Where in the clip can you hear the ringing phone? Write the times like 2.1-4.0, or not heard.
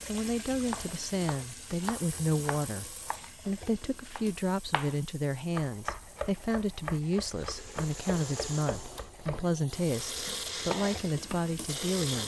not heard.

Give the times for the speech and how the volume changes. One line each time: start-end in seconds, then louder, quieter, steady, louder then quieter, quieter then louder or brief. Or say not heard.
0.1-12.2 steady.